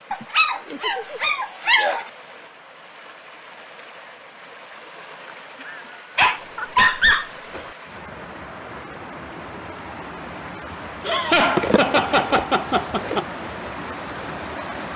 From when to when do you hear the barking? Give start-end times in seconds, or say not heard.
0.1-2.0, 6.2-7.7, 11.6-13.2.